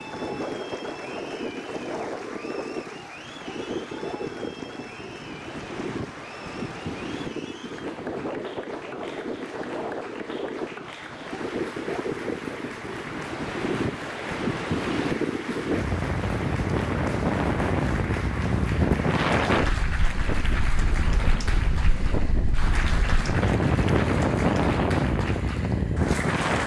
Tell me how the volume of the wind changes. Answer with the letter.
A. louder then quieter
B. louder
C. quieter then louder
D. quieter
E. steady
B.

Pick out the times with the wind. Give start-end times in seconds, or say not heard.
0.0-26.6.